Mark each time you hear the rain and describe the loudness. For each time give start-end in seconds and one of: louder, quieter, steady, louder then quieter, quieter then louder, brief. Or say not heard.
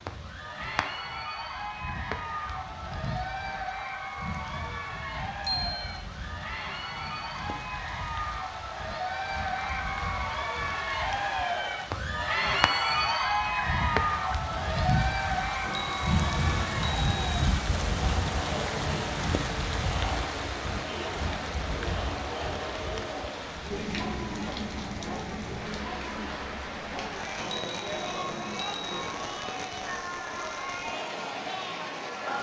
0.0-32.3 louder then quieter.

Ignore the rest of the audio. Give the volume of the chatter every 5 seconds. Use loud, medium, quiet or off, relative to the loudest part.
medium, medium, loud, medium, medium, medium, medium.